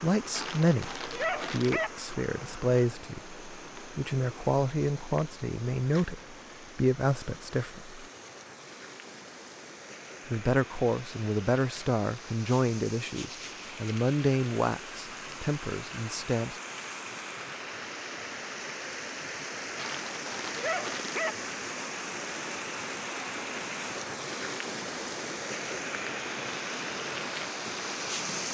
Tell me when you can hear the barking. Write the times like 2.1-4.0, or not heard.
0.3-1.9, 19.8-21.4.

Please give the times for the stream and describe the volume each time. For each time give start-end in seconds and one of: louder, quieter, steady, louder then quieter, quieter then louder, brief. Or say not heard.
0.0-28.4 louder.